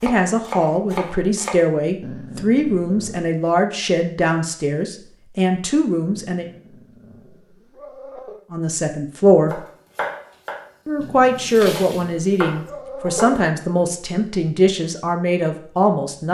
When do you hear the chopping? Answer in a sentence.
You can hear the chopping from 0.0 to 1.6 s and from 9.5 to 13.4 s.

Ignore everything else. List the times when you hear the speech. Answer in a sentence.
You can hear the speech from 0.0 to 6.5 s, from 8.5 to 9.6 s and from 10.8 to 16.3 s.